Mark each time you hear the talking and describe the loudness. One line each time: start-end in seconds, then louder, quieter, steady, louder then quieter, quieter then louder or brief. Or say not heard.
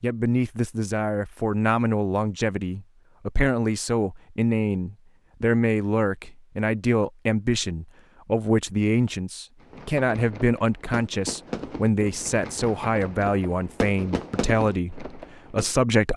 0.0-16.1 steady.